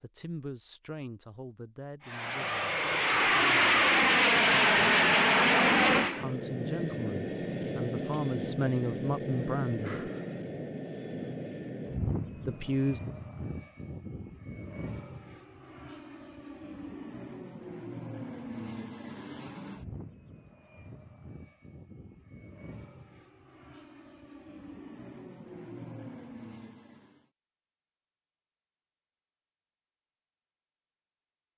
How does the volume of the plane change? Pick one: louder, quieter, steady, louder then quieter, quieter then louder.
quieter.